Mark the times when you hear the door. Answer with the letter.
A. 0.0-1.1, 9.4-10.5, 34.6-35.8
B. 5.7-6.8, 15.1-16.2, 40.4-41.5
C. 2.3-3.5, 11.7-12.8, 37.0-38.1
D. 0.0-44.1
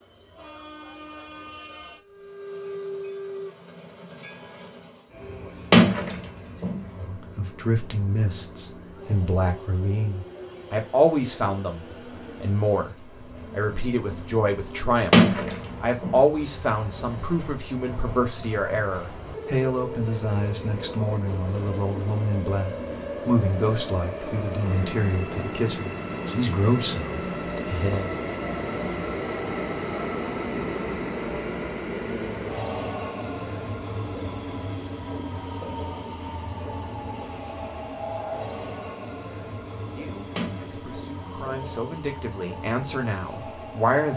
B.